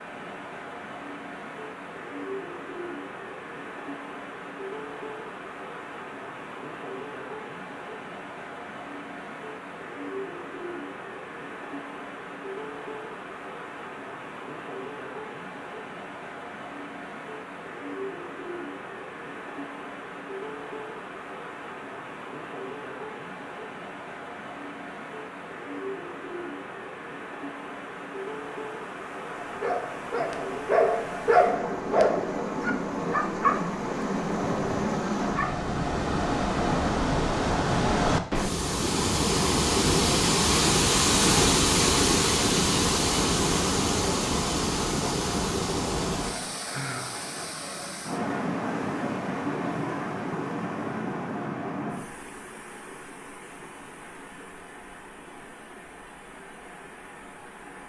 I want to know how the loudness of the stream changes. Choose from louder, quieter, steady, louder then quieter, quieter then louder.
louder then quieter.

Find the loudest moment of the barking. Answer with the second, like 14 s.
31 s.